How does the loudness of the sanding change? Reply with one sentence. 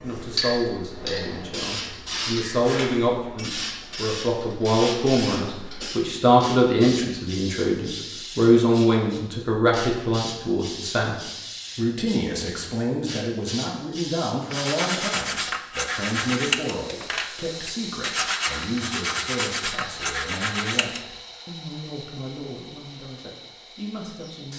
The loudness of the sanding stays about the same.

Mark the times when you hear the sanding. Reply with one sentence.
You can hear the sanding from 14.4 to 21.1 s.